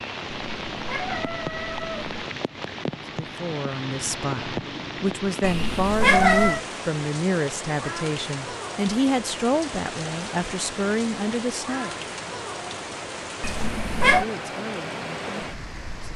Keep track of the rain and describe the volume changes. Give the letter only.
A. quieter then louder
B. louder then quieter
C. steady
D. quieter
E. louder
C.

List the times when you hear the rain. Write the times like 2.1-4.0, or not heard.
0.0-16.1.